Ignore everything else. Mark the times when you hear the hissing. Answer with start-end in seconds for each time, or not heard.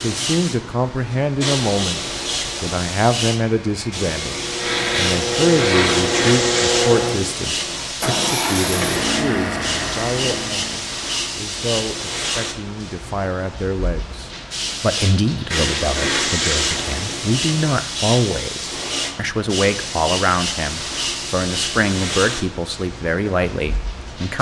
0.0-24.3.